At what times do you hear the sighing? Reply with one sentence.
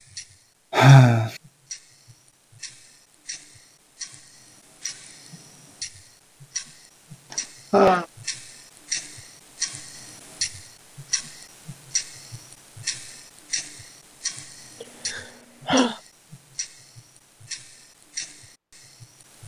You can hear the sighing from 0.7 to 1.3 s, from 7.3 to 8.1 s and from 14.8 to 15.9 s.